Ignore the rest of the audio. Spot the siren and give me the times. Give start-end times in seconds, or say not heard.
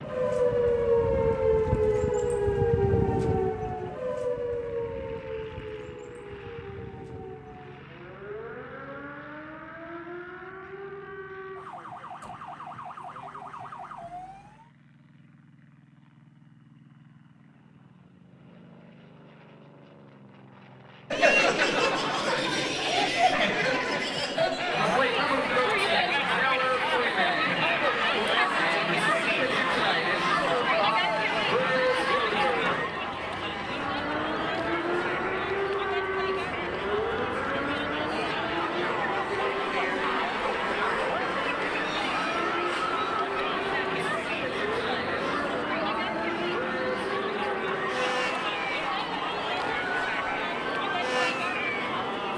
0.0-14.7, 33.6-52.3.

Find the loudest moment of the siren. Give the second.
1 s.